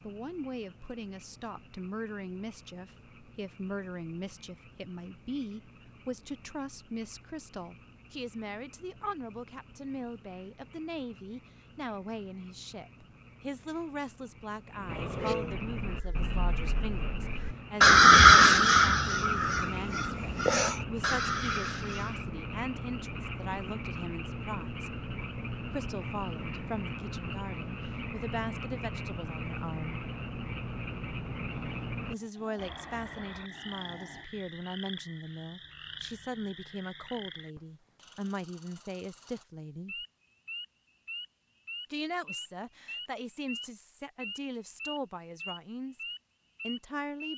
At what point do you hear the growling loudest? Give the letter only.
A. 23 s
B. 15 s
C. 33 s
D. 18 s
B.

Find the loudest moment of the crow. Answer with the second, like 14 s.
18 s.